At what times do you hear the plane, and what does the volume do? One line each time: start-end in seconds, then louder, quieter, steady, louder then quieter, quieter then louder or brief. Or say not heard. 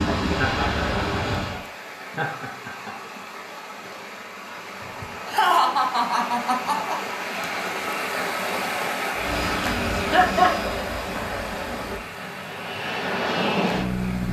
0.0-1.6 brief
9.2-14.2 quieter then louder.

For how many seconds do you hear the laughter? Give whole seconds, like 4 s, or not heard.
5 s.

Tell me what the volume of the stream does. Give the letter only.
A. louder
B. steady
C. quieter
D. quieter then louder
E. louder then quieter
E.